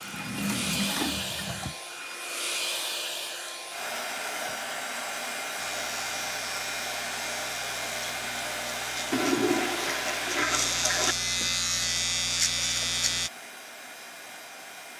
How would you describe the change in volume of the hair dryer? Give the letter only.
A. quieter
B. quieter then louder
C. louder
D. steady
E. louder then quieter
A.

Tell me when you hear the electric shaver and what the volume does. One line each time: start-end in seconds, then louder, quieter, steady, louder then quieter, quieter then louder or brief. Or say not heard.
5.5-13.3 louder.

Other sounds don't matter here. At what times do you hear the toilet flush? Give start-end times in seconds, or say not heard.
0.0-1.8, 9.1-11.2.